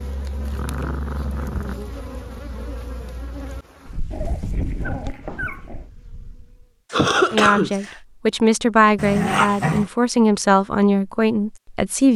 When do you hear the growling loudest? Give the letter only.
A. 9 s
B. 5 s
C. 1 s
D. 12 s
A.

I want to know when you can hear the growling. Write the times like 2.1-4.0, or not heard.
0.4-1.8, 4.1-5.8, 8.9-9.9.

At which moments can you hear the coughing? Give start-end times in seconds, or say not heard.
6.9-8.0.